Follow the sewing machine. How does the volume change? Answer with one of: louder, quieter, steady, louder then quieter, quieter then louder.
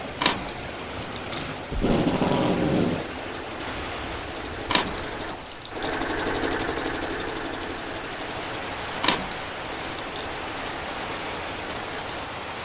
louder then quieter.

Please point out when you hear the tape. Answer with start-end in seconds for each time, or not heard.
1.7-3.1.